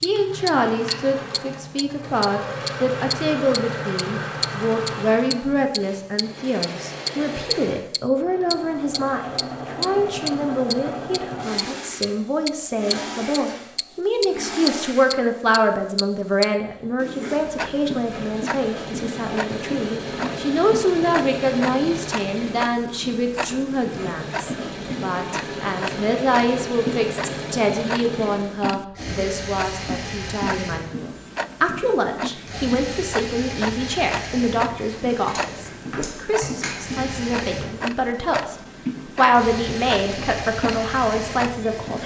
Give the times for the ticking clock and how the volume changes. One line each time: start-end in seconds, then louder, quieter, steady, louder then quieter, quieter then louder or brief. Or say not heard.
0.0-42.0 quieter.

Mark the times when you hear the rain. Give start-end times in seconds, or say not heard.
not heard.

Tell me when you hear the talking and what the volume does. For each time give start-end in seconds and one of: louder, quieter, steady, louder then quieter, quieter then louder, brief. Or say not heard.
0.0-42.0 steady.